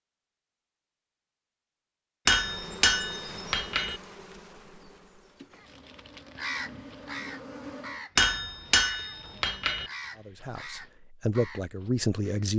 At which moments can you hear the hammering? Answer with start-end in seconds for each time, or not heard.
2.2-4.0, 8.2-9.9.